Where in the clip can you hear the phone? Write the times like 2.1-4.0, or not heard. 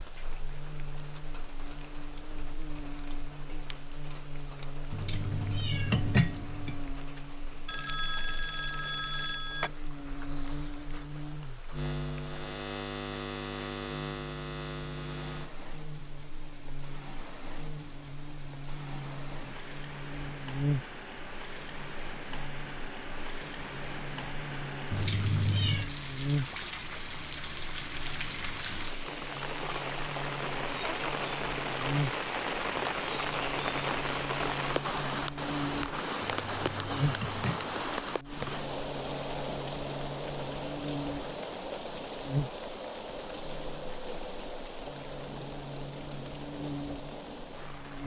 7.7-9.7.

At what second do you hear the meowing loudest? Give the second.
6 s.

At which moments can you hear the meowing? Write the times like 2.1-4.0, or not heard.
4.9-6.8, 24.9-25.9, 36.2-37.8.